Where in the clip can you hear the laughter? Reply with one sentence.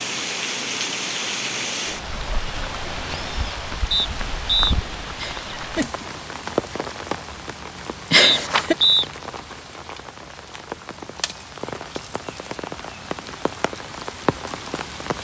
You can hear the laughter from 5.2 to 6.0 s and from 8.1 to 8.8 s.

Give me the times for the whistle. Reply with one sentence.
The whistle can be heard from 3.9 to 4.8 s and from 8.2 to 9.1 s.